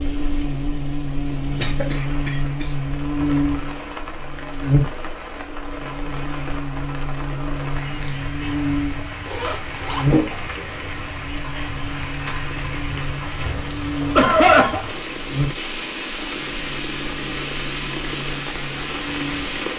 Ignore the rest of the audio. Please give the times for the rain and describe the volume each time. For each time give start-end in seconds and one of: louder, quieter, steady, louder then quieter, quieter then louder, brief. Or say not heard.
0.0-19.7 louder.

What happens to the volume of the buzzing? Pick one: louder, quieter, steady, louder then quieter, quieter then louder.
quieter.